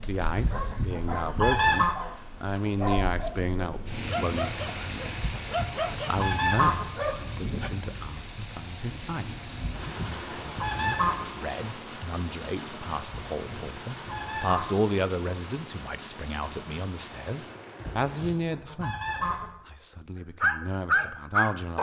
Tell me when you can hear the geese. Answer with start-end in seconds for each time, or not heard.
0.3-1.9, 5.2-6.9, 9.6-11.3, 13.1-14.8, 17.8-19.6.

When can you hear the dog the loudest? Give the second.
21 s.